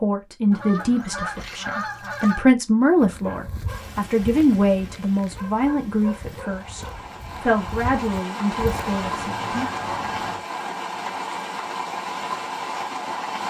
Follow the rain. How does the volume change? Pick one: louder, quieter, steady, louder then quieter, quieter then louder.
louder.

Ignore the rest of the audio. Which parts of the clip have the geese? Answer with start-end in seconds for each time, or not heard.
0.5-2.4, 8.6-10.5.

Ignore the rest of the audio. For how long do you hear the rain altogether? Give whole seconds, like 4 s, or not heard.
10 s.